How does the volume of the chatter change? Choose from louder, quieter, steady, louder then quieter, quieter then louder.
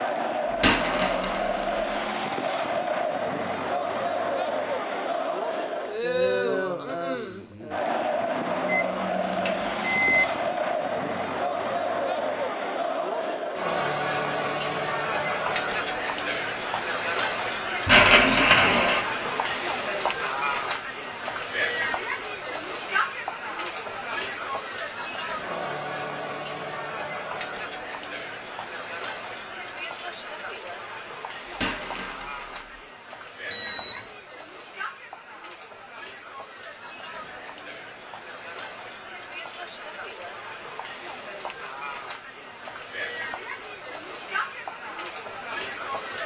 quieter.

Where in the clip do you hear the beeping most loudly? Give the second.
10 s.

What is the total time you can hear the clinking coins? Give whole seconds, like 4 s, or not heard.
4 s.